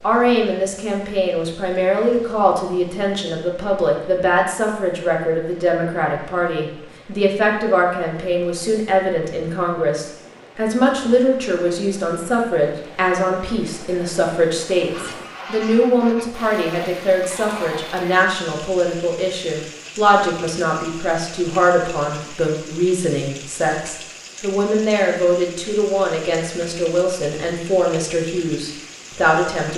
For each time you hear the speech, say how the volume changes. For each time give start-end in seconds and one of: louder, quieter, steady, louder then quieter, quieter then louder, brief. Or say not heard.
0.0-29.7 steady.